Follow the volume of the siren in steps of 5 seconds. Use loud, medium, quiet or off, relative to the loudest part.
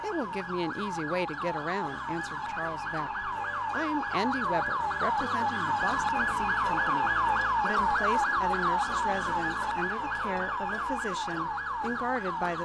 medium, loud, medium.